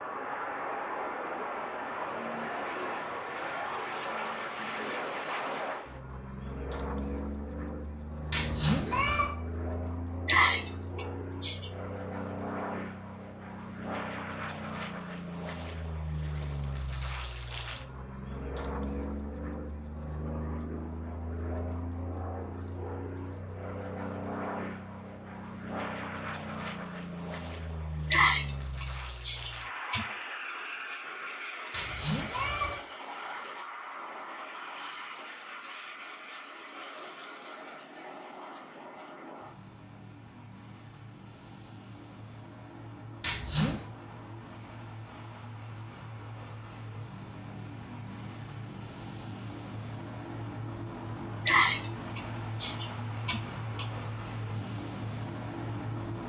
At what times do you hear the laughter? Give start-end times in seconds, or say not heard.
10.2-11.7, 28.1-30.1, 51.5-53.9.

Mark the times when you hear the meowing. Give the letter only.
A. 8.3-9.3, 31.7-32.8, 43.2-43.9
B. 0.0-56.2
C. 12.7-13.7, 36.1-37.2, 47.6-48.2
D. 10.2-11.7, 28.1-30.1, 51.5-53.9
A.